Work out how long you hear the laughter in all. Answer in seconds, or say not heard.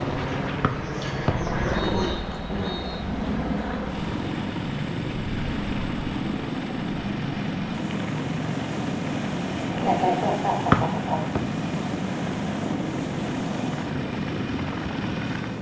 4 s.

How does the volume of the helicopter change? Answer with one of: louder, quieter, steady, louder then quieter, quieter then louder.
steady.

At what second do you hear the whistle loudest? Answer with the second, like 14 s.
11 s.